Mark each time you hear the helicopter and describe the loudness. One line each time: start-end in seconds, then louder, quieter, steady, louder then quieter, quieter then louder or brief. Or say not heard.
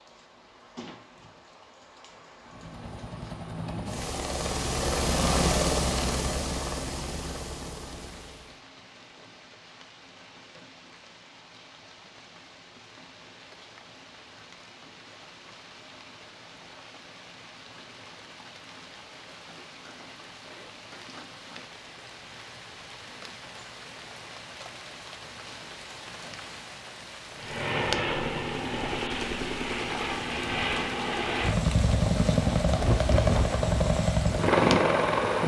2.4-8.6 louder then quieter
27.4-35.4 louder.